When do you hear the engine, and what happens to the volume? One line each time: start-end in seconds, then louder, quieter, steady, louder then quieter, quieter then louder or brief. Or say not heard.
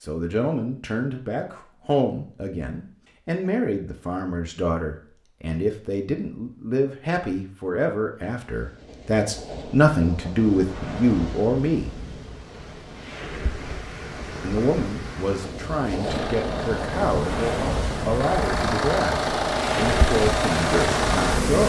15.9-21.6 louder.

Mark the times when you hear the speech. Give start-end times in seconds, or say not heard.
0.0-11.9, 14.4-21.6.